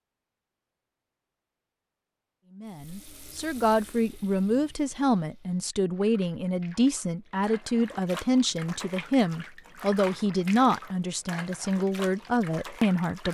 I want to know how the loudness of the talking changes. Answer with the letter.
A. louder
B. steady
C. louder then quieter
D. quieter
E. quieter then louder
B.